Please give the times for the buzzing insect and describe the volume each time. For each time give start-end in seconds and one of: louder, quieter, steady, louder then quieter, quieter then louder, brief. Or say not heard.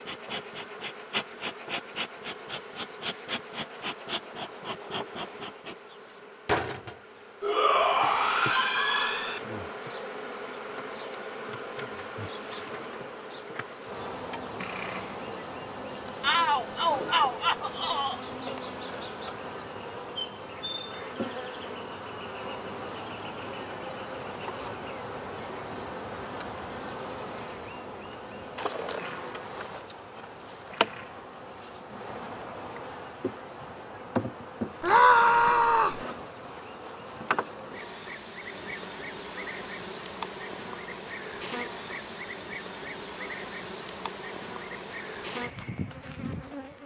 0.0-46.8 steady.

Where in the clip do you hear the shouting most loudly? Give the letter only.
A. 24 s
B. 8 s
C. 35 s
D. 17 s
C.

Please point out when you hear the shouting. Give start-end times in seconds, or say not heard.
7.4-9.4, 16.2-18.2, 34.8-36.0.